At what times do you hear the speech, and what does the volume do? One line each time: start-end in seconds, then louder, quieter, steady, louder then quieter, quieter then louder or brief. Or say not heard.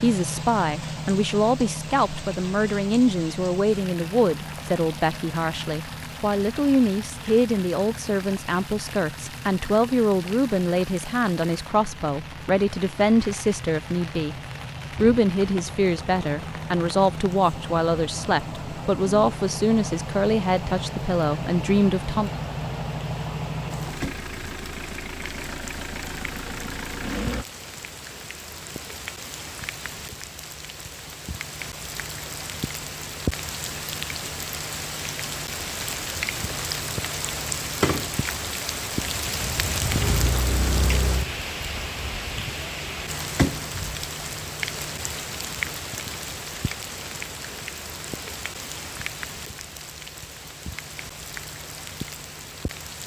0.0-14.3 steady
15.0-22.3 steady.